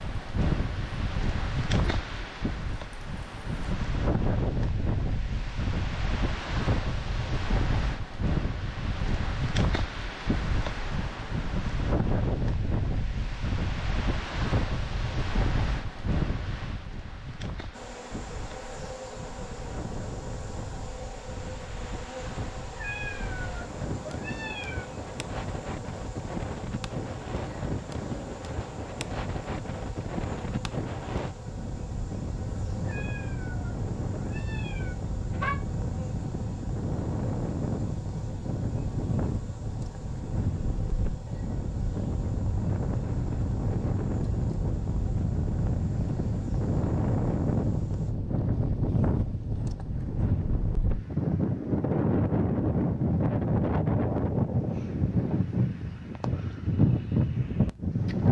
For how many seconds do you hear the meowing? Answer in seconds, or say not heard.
5 s.